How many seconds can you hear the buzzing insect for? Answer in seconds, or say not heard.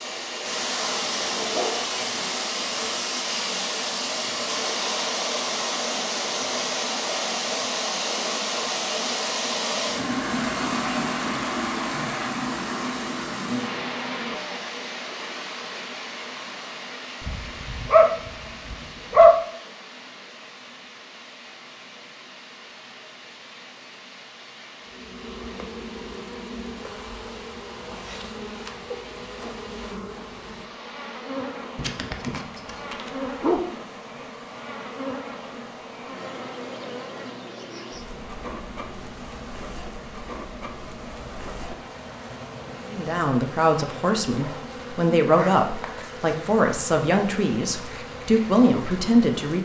25 s.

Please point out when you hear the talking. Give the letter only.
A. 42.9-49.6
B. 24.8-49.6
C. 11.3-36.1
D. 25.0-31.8
A.